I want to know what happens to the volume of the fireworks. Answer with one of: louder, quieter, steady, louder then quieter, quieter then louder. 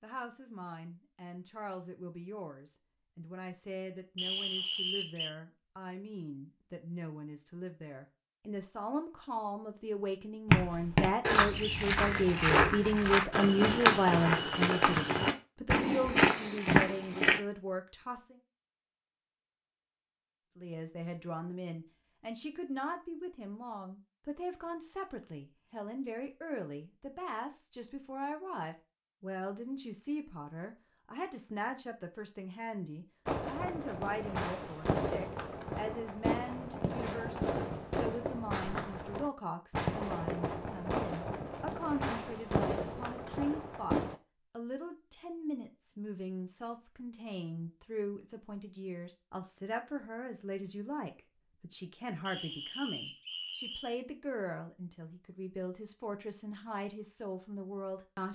steady.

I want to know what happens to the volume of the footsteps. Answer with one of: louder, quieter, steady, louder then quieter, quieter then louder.
steady.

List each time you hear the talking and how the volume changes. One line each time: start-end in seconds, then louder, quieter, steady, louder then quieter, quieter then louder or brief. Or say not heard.
0.0-18.4 louder then quieter
20.6-58.3 steady.